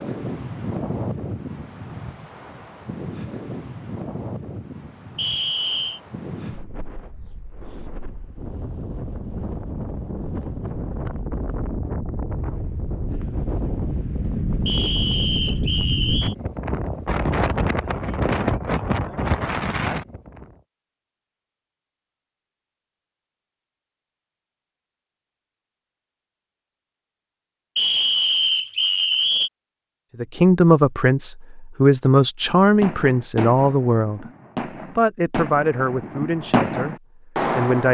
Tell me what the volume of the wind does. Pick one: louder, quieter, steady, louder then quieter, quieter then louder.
quieter then louder.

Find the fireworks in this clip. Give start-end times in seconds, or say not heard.
32.6-37.8.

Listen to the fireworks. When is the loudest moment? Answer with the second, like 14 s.
37 s.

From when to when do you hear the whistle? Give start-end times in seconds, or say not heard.
5.2-6.0, 14.7-16.4, 27.8-29.5.